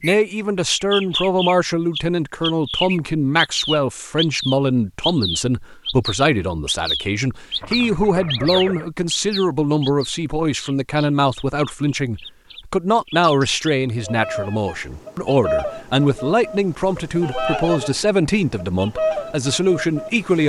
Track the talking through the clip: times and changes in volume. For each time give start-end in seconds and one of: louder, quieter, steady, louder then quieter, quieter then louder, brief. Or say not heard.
0.0-20.4 steady.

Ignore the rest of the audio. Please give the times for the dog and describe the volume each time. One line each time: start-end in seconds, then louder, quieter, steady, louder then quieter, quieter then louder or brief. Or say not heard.
not heard.